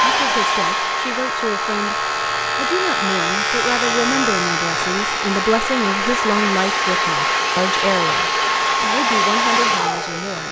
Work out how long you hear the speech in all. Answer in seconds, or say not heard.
10 s.